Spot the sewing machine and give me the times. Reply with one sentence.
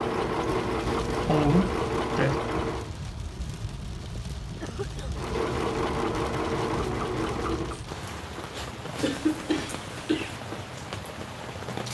The sewing machine can be heard from 0.0 to 2.9 s and from 5.1 to 7.8 s.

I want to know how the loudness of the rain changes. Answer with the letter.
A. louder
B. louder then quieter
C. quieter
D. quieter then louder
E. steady
E.